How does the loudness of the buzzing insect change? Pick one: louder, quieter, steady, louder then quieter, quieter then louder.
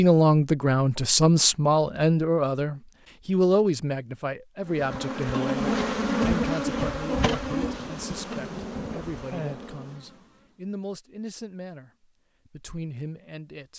quieter.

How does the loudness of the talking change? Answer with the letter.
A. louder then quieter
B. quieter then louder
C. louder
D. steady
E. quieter
E.